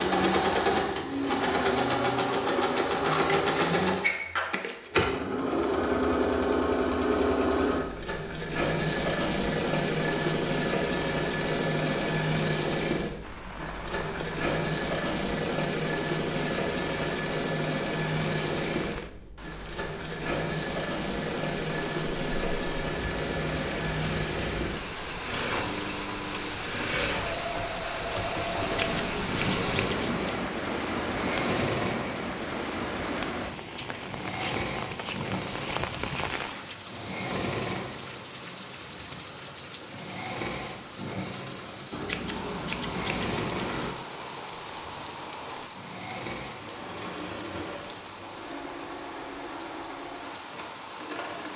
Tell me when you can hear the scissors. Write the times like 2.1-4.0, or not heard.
3.0-5.2, 28.6-30.4, 41.9-44.0.